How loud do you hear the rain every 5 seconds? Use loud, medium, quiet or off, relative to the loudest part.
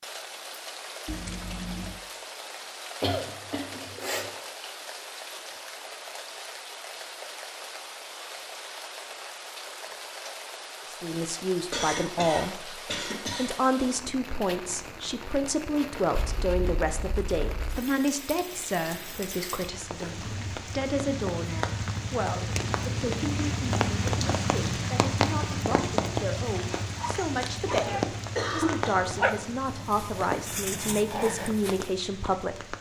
medium, medium, medium, medium, loud, loud, medium.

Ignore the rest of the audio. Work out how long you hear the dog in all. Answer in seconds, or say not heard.
4 s.